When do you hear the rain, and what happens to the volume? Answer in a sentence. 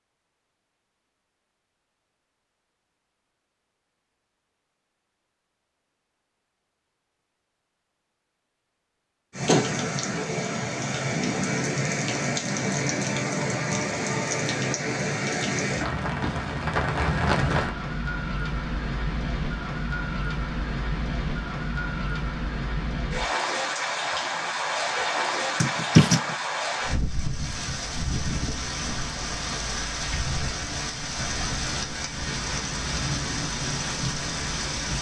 The rain can be heard from 9.3 to 34.9 s, at a steady volume.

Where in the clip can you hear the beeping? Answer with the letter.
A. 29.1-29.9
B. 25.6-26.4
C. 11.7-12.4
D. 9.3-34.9
B.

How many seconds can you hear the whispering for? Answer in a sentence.
The whispering can't be heard in this clip.